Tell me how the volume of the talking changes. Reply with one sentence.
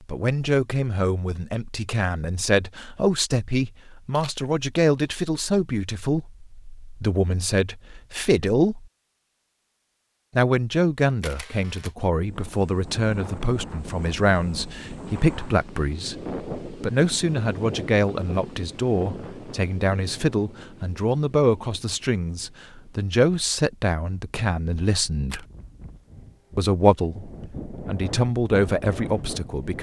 The loudness of the talking stays about the same.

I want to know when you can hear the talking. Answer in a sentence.
The talking can be heard from 0.1 to 8.8 s, from 10.3 to 25.4 s and from 26.6 to 29.7 s.